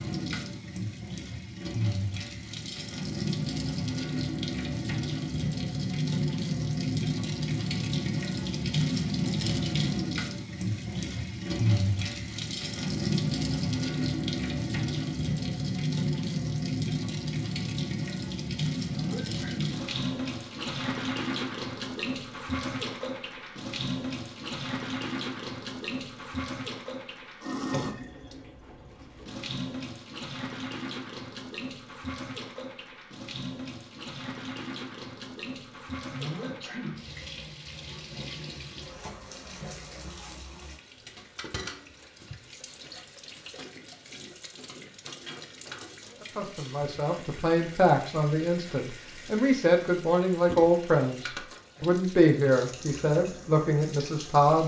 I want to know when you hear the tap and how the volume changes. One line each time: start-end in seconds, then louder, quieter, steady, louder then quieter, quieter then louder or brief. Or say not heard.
0.0-54.6 quieter.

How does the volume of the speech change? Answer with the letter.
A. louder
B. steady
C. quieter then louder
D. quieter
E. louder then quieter
B.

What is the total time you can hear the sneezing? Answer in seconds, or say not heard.
2 s.